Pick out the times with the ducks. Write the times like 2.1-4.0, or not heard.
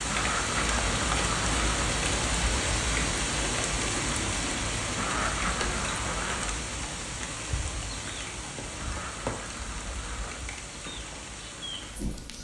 0.1-1.9, 5.0-6.6, 8.8-10.4.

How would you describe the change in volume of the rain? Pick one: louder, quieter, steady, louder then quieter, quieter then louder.
quieter.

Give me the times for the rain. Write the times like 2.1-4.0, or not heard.
0.0-12.3.